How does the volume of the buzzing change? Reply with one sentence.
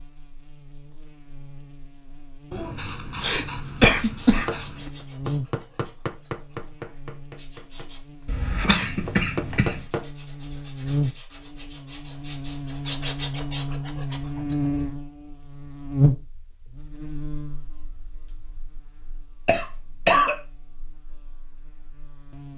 The loudness of the buzzing goes up, then down.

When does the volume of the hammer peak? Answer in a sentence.
The loudest moment of the hammer is at 10 seconds.